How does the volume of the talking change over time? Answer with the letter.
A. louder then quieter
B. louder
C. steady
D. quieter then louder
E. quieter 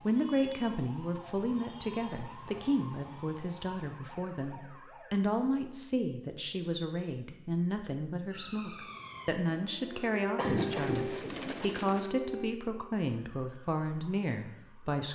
C.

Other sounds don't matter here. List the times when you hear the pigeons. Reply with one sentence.
The pigeons can be heard from 10.6 to 12.1 s.